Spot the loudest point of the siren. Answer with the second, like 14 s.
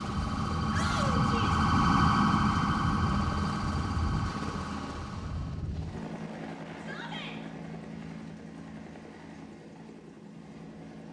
2 s.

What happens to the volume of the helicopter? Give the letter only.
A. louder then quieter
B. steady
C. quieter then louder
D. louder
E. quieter
E.